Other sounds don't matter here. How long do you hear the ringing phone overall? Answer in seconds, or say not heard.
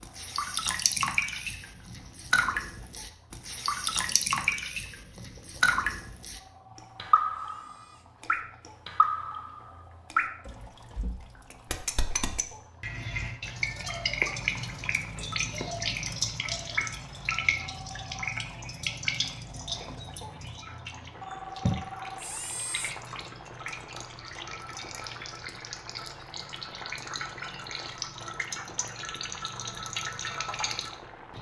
4 s.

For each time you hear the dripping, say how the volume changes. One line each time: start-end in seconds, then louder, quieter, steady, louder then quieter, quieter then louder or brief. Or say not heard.
0.0-31.3 quieter.